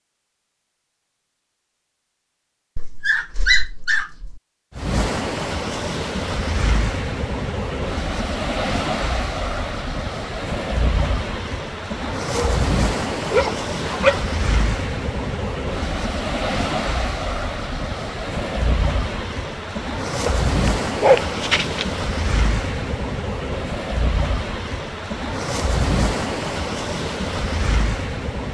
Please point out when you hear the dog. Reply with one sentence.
The dog can be heard from 2.8 to 4.4 s, from 12.2 to 12.7 s, from 13.3 to 14.2 s and from 20.2 to 21.9 s.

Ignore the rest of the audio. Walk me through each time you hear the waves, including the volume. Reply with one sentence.
The waves can be heard from 4.8 to 28.4 s, at a steady volume.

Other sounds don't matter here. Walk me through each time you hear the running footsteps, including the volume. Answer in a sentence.
The running footsteps can't be heard in this clip.